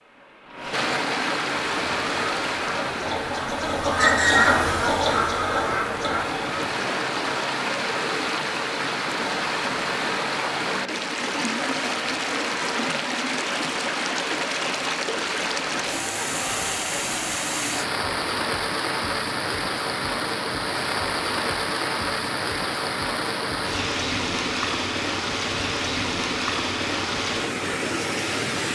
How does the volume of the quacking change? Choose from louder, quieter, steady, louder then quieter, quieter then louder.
louder then quieter.